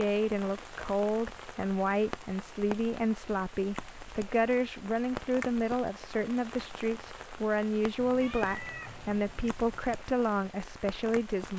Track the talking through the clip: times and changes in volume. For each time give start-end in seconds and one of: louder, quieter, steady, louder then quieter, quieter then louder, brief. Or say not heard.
0.0-11.5 steady.